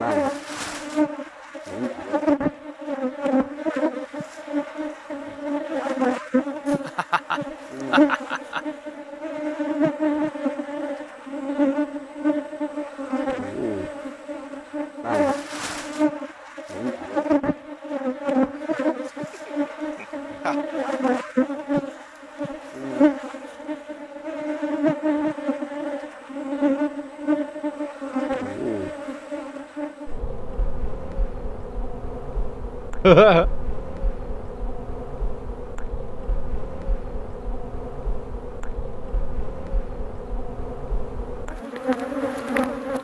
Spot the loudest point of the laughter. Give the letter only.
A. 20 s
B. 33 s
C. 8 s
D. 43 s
B.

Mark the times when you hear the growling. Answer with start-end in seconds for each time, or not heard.
not heard.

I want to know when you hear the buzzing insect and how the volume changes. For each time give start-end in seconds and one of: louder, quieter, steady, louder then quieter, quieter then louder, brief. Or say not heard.
0.0-42.9 quieter.